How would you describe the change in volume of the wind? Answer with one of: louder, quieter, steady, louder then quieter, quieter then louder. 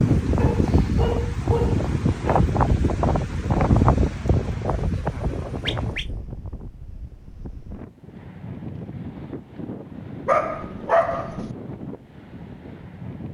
quieter.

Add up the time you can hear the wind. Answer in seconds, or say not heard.
13 s.